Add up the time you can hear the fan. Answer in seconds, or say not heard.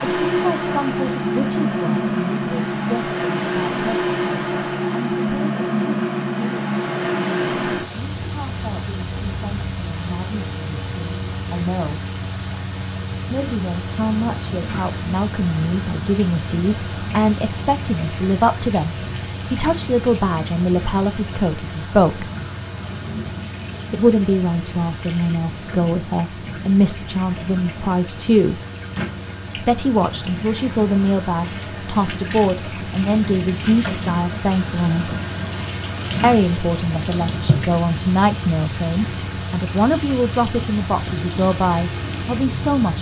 43 s.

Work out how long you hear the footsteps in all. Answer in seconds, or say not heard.
not heard.